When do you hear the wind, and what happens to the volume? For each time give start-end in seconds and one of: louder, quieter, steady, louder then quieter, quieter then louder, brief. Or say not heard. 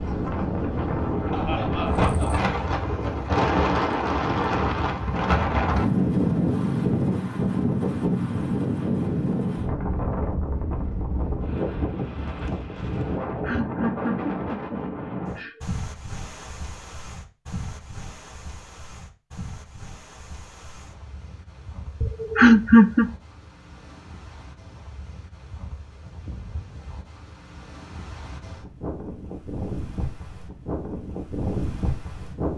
0.0-32.5 quieter then louder.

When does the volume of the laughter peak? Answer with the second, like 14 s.
23 s.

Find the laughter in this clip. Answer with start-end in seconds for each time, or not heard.
1.3-2.5, 13.2-15.6, 22.0-23.1.